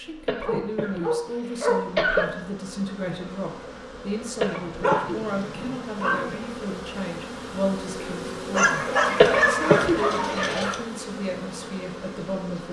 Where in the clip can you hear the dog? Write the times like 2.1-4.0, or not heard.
0.4-1.9, 4.5-6.3, 8.5-10.8.